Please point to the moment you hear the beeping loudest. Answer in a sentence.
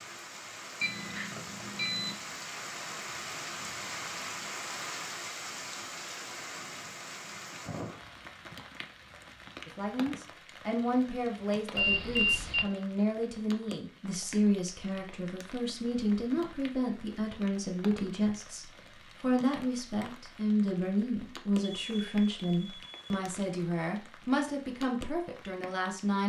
The volume of the beeping peaks at 12 seconds.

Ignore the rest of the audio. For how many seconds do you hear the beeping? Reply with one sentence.
You can hear the beeping for 4 seconds altogether.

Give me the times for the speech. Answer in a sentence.
You can hear the speech from 9.7 to 26.2 s.